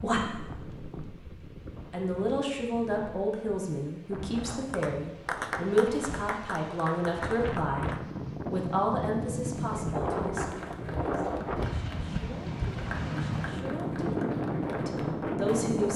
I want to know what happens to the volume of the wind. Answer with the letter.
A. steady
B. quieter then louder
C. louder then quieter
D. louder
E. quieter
D.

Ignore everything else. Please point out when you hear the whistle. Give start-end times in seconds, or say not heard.
not heard.